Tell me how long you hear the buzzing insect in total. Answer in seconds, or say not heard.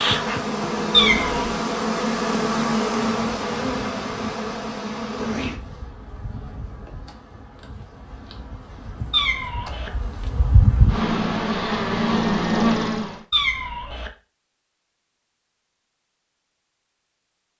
13 s.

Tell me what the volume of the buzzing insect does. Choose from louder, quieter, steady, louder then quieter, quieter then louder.
quieter then louder.